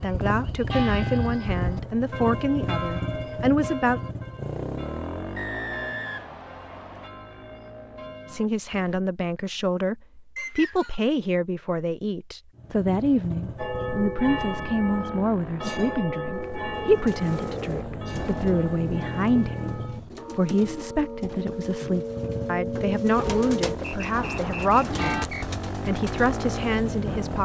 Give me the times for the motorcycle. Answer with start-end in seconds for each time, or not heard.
0.0-8.7, 12.6-20.1, 21.9-27.3.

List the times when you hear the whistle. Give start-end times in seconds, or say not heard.
5.3-7.1, 10.3-11.0, 24.1-25.4.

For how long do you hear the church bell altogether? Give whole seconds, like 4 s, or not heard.
21 s.